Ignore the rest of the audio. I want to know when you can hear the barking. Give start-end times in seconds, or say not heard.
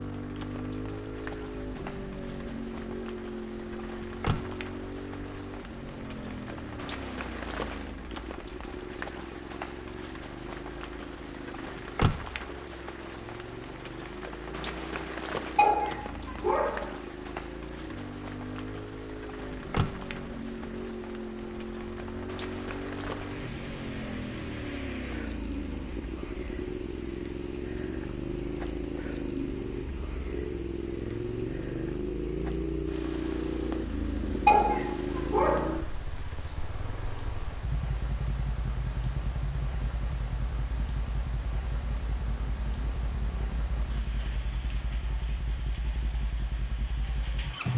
15.6-16.9, 34.5-35.8.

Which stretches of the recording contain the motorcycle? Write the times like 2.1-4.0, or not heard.
0.0-47.7.